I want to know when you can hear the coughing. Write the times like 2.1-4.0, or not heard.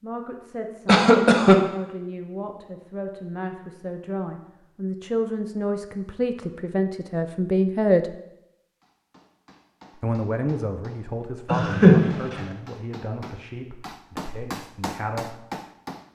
0.8-1.6, 11.4-12.4.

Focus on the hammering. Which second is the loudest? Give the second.
15 s.